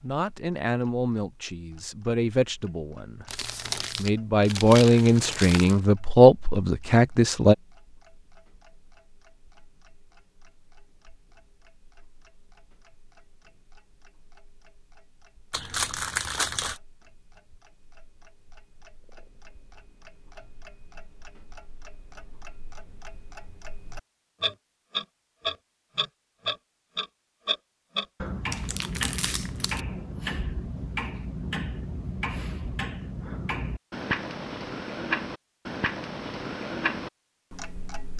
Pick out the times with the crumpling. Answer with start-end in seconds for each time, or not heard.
3.2-5.8, 15.5-16.8, 28.5-29.8.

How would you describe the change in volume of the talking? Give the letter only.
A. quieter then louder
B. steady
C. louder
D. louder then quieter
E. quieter
C.